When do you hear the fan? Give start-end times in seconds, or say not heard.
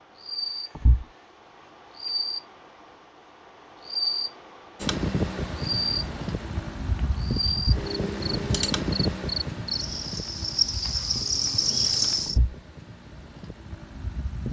4.8-14.4.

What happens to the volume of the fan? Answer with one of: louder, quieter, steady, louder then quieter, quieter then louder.
quieter.